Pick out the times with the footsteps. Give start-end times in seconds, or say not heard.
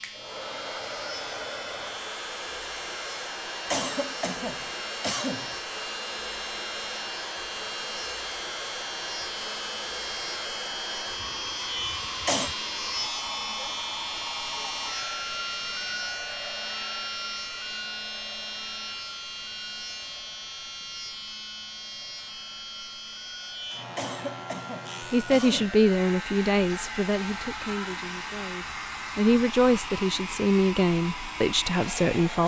not heard.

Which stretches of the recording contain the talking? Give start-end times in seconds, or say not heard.
25.1-32.4.